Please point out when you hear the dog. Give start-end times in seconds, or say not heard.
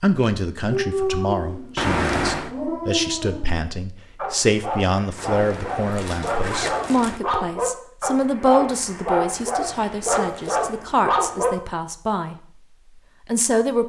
0.7-11.5.